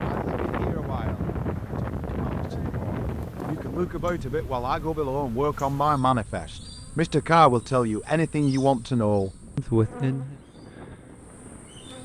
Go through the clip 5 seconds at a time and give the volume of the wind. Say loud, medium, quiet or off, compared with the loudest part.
loud, quiet, quiet.